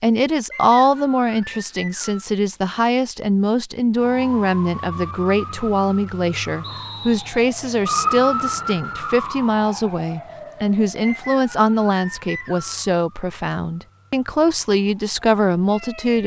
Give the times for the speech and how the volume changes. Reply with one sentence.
You can hear the speech from 0.0 to 16.2 s, at a steady volume.